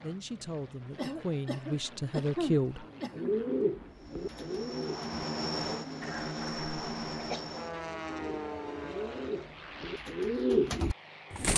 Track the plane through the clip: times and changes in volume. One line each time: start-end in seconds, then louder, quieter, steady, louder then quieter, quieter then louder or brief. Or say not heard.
0.0-11.5 louder then quieter.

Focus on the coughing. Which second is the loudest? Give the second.
2 s.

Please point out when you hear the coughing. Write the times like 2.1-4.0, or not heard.
0.9-3.4, 6.0-7.5.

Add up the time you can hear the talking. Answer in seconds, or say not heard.
3 s.